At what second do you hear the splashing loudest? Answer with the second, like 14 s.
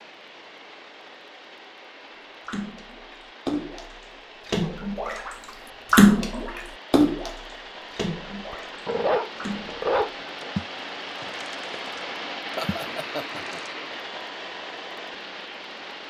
6 s.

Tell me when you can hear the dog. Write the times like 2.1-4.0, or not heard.
8.5-10.3.